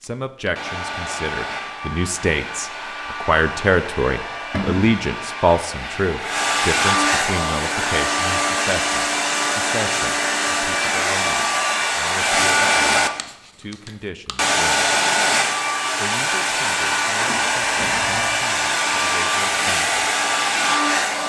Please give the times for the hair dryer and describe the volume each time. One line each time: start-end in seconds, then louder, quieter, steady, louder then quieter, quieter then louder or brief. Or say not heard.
0.0-21.2 louder.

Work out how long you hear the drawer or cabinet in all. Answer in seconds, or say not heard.
2 s.